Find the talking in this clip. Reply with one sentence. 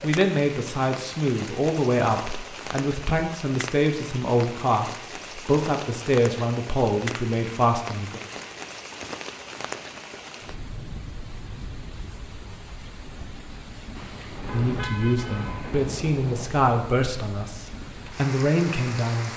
The talking can be heard from 0.0 to 8.2 s and from 14.5 to 19.3 s.